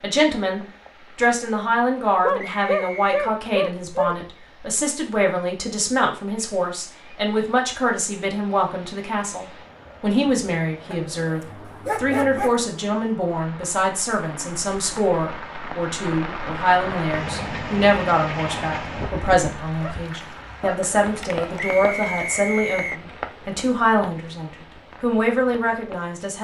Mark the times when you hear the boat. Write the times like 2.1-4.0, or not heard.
not heard.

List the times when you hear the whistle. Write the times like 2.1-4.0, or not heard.
2.5-3.4, 21.6-23.1.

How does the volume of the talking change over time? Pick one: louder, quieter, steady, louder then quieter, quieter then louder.
steady.